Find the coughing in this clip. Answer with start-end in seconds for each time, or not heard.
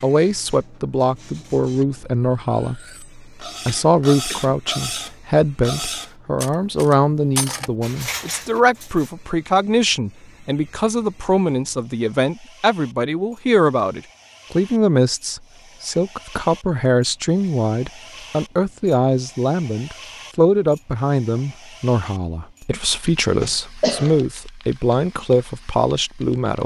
3.6-4.5, 23.4-24.2.